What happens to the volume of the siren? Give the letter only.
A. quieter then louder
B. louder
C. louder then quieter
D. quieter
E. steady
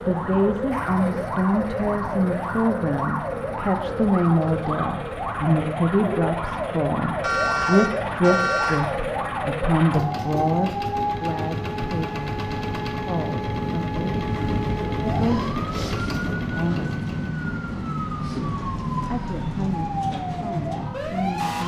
E.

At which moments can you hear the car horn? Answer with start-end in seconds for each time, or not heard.
7.2-8.8.